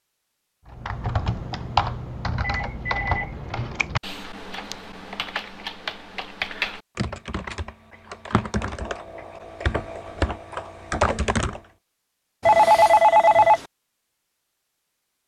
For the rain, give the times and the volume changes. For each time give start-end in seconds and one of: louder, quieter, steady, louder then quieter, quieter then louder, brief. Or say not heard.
not heard.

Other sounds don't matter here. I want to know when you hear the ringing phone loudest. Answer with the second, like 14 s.
13 s.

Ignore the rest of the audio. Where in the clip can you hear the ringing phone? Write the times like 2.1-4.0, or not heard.
2.4-3.9, 12.4-13.7.